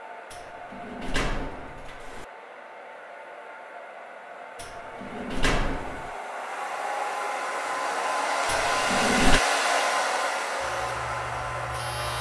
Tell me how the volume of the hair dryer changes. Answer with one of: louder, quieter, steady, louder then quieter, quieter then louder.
louder.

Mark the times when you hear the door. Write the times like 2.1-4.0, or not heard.
0.3-2.2, 4.5-6.1, 8.4-9.4.